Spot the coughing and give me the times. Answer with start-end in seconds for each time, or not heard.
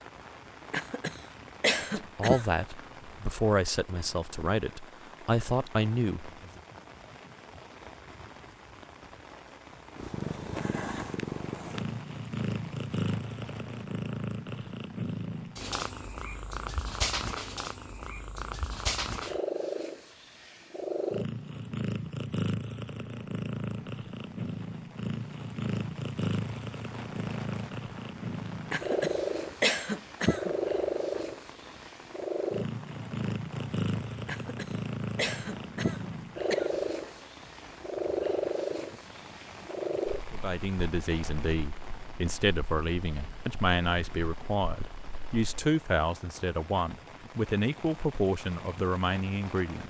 0.7-2.5, 28.7-30.6, 34.2-36.9.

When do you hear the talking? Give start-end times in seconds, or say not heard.
1.9-6.6, 40.3-49.8.